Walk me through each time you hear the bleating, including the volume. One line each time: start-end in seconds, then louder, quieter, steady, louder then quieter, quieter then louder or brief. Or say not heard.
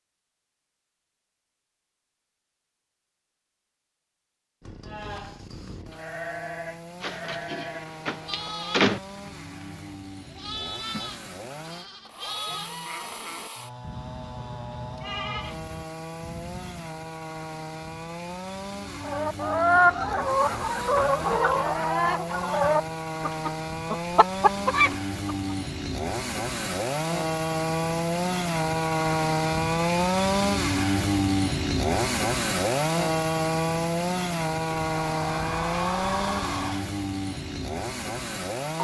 4.8-16.9 steady.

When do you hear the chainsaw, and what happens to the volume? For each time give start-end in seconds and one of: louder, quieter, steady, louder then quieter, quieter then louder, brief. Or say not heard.
4.6-38.7 louder.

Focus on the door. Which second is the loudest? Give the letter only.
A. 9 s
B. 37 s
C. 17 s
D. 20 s
A.